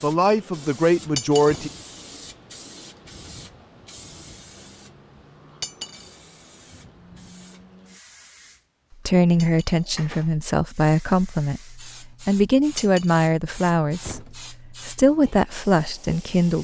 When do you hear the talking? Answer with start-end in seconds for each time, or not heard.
0.0-1.7, 9.1-16.6.